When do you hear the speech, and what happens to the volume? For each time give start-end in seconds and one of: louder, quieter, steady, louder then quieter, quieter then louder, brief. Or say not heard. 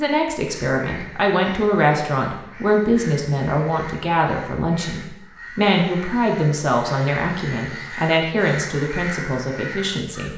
0.0-10.3 steady.